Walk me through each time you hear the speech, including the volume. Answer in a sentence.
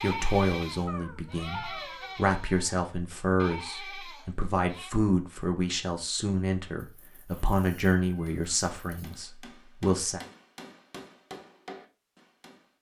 You can hear the speech from 0.0 to 10.2 s, at a steady volume.